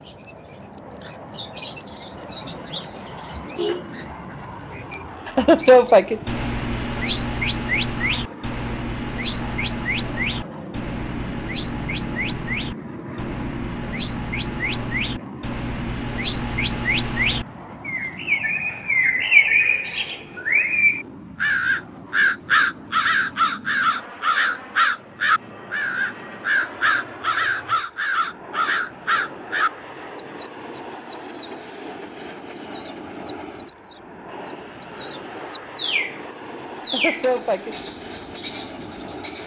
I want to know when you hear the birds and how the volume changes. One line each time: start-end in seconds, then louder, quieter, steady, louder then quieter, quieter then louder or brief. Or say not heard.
0.0-39.4 louder then quieter.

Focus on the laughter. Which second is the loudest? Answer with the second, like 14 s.
6 s.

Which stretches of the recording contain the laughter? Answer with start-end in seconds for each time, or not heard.
5.2-6.2, 36.8-37.8.